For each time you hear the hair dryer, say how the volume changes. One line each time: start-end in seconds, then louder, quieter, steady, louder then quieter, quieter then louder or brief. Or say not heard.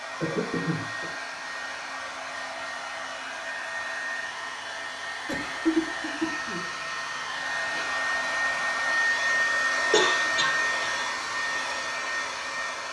0.0-12.8 louder.